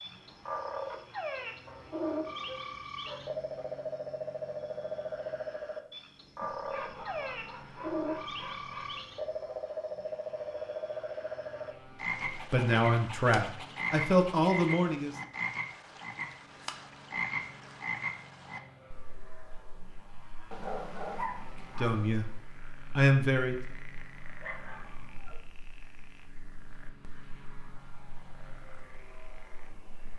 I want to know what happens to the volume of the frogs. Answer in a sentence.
The volume of the frogs goes down.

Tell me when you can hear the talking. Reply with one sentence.
You can hear the talking from 12.3 to 15.2 s and from 21.8 to 23.6 s.